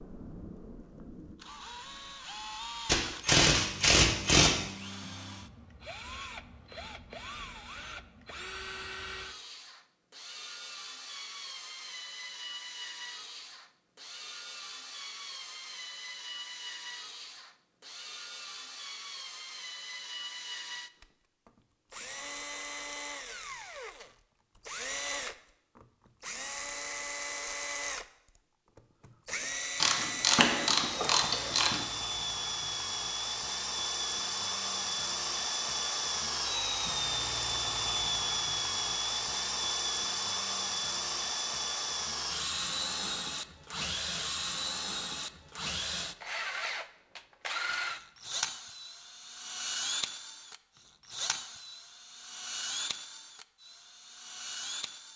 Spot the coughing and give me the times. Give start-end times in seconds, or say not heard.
not heard.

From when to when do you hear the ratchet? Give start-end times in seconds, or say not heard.
2.9-4.5, 29.8-31.8.